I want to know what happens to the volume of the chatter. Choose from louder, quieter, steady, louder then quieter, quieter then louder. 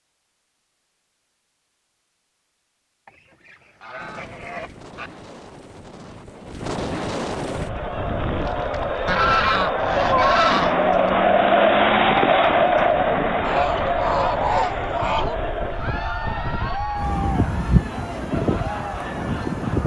louder then quieter.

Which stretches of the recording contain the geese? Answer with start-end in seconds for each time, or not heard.
3.0-5.1, 9.1-11.1, 13.4-15.3.